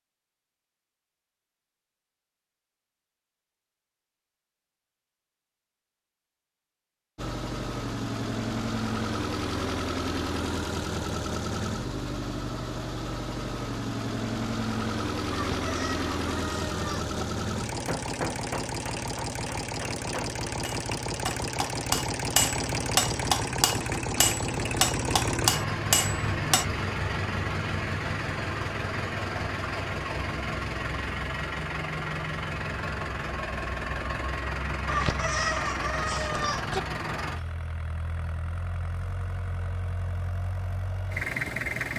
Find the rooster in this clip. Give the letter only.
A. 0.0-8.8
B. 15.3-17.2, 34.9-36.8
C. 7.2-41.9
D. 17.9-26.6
B.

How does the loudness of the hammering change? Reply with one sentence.
The loudness of the hammering goes up.